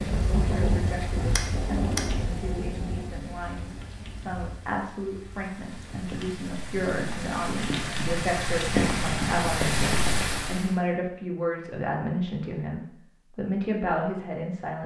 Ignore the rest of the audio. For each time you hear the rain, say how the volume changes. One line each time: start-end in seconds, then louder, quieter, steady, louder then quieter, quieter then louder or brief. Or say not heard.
0.0-10.8 quieter then louder.